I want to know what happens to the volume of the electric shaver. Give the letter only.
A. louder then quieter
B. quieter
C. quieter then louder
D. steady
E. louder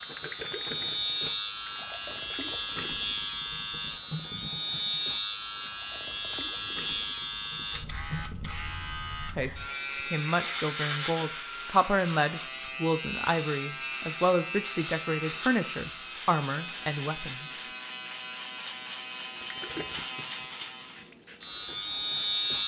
D.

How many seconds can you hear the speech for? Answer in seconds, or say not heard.
8 s.